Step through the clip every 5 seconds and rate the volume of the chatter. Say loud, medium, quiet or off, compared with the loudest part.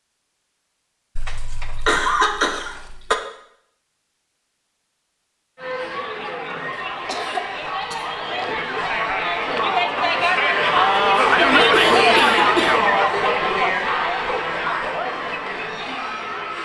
off, medium, loud, medium.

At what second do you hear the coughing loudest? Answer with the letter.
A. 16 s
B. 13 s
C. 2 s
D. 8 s
C.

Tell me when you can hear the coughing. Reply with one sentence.
The coughing can be heard from 1.1 to 3.1 s, from 6.8 to 8.2 s and from 11.7 to 12.9 s.